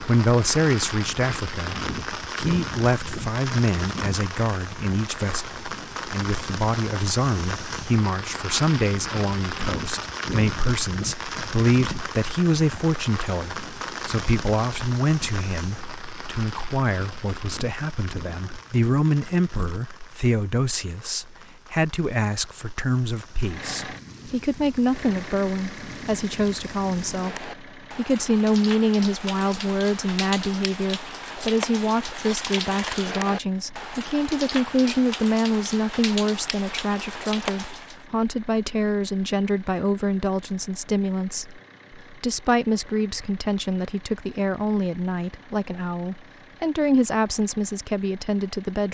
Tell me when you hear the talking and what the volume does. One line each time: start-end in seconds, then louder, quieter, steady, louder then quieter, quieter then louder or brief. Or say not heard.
0.0-48.8 steady.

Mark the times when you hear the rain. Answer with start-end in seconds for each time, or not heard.
0.0-38.0.